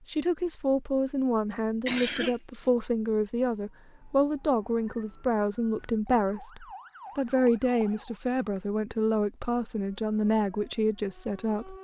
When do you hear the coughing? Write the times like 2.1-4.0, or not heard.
1.9-2.7, 7.0-8.6.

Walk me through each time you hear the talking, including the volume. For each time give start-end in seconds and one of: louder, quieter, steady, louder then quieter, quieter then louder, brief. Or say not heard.
0.1-11.7 steady.